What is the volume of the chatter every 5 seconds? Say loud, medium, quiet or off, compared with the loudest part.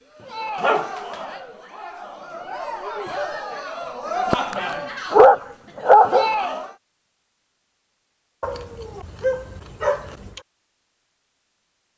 loud, loud, off.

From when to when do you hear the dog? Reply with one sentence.
You can hear the dog from 0.6 to 1.1 s, from 4.3 to 6.3 s and from 8.4 to 10.4 s.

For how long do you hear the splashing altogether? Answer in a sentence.
You can't hear the splashing here.